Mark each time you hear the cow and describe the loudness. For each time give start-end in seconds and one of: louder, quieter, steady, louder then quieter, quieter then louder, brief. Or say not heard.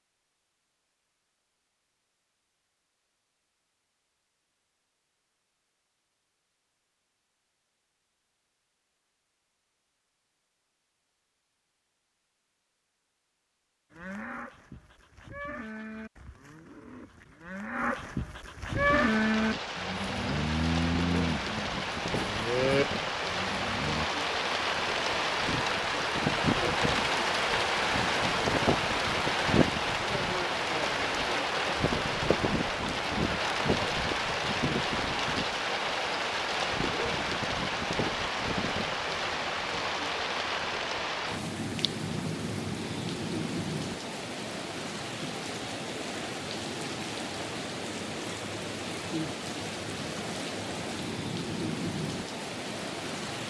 13.9-24.1 louder.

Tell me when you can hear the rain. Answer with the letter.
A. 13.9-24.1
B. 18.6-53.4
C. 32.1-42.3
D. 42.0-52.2
B.